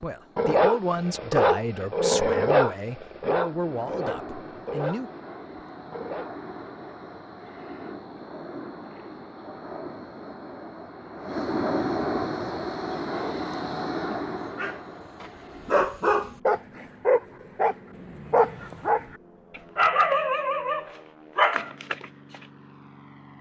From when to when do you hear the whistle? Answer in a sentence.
The whistle can't be heard in this clip.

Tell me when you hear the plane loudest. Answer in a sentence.
The volume of the plane peaks at 12 seconds.